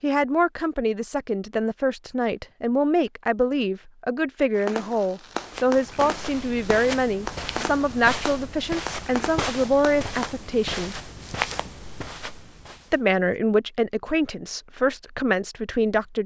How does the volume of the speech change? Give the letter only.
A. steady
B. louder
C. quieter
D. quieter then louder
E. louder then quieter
A.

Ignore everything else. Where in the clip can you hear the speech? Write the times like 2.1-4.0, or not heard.
0.0-11.0, 12.9-16.2.